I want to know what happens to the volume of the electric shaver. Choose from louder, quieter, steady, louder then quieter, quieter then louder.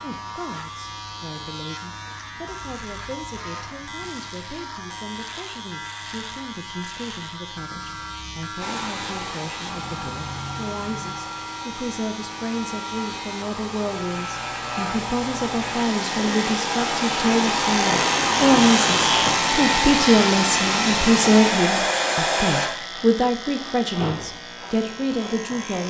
louder then quieter.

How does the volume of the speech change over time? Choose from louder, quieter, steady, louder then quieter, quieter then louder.
louder.